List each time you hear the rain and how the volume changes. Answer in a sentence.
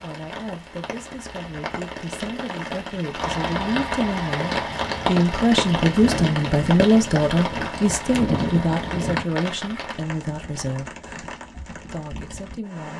The rain can be heard from 0.0 to 12.9 s, getting louder then quieter.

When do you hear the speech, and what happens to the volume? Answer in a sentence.
The speech can be heard from 0.0 to 11.0 s, getting louder then quieter; and briefly from 11.8 to 12.9 s.